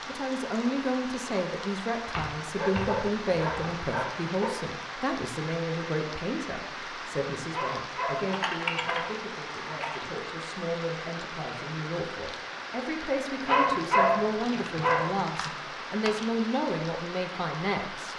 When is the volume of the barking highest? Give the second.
14 s.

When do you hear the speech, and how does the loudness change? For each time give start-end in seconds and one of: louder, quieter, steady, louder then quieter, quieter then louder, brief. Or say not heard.
0.1-18.1 quieter then louder.